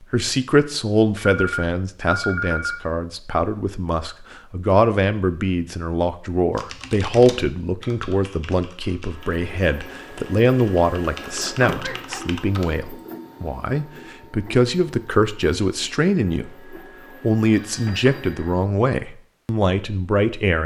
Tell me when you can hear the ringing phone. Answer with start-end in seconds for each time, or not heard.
1.1-2.8, 11.6-12.2, 17.5-18.5.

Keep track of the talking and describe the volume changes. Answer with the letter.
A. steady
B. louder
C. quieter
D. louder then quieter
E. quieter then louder
A.